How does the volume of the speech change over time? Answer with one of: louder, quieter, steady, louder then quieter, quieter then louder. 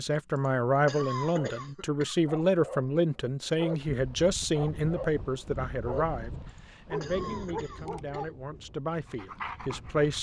quieter.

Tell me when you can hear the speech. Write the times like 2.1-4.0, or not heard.
0.0-10.1.